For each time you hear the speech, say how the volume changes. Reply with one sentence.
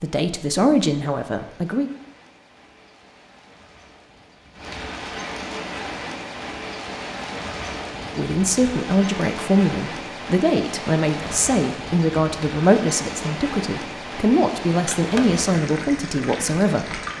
You can hear the speech briefly from 0.0 to 1.9 s; and from 8.2 to 17.0 s, at a steady volume.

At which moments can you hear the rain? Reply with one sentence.
The rain can be heard from 0.0 to 17.1 s.